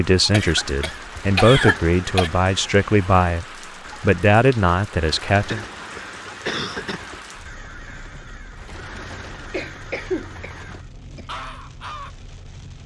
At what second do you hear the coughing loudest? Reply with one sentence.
The volume of the coughing peaks at 2 seconds.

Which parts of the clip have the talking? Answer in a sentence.
The talking can be heard from 0.0 to 5.7 s.